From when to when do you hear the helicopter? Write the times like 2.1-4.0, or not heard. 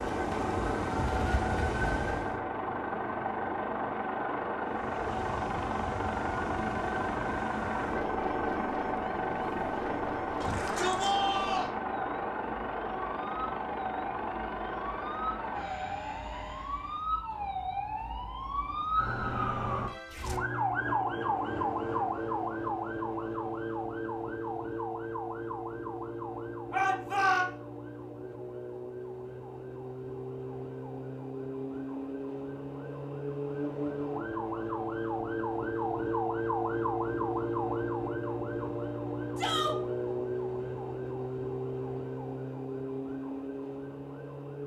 0.0-17.1.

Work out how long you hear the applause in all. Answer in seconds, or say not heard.
not heard.